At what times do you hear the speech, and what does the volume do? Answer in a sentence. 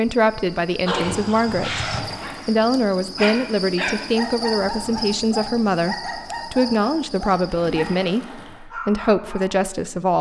You can hear the speech from 0.0 to 10.1 s, at a steady volume.